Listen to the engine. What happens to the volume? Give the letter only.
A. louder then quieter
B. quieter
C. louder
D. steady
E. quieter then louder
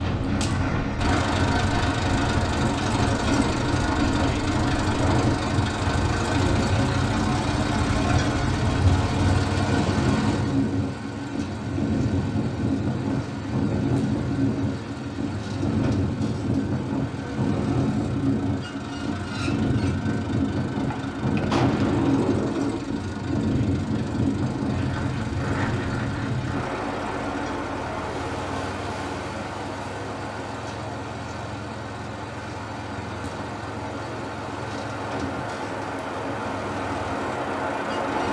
B.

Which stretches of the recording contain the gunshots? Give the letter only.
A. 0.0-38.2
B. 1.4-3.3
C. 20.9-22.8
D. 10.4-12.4
C.